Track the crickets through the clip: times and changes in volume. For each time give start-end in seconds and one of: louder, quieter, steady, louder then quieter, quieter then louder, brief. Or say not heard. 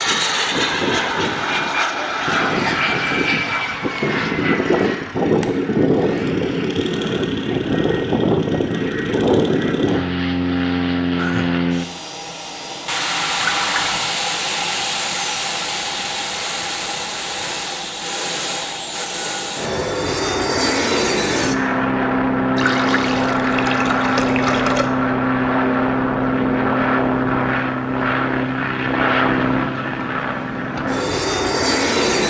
not heard.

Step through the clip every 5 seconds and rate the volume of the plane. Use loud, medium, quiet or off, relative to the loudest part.
loud, loud, loud, medium, loud, loud, loud.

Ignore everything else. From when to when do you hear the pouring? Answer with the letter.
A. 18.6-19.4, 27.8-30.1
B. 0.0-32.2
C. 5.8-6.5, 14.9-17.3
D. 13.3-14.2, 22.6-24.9
D.